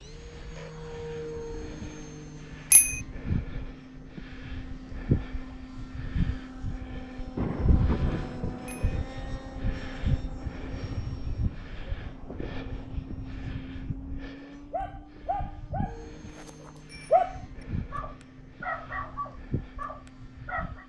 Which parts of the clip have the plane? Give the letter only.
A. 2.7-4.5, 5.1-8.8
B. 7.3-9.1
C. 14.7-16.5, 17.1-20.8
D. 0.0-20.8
D.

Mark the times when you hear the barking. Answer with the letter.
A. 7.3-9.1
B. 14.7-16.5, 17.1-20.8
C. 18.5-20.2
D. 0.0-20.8
B.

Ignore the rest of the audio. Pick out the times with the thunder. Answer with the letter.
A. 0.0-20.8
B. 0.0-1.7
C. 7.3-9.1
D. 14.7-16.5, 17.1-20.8
C.